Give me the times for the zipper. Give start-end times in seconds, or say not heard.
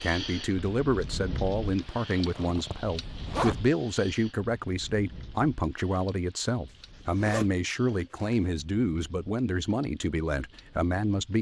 1.8-3.6, 6.7-8.4.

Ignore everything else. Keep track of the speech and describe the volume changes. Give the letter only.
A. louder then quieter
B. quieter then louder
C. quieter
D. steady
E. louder
D.